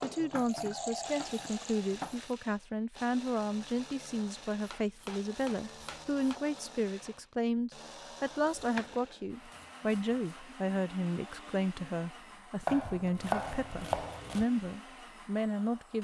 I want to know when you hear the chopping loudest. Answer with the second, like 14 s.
13 s.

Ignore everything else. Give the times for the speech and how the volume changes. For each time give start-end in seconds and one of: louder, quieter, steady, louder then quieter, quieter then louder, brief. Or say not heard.
0.0-16.0 steady.